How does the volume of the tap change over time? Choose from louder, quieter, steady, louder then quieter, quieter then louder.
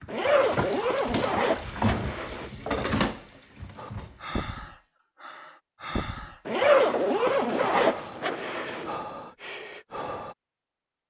louder then quieter.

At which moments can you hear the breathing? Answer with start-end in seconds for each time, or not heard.
3.8-10.3.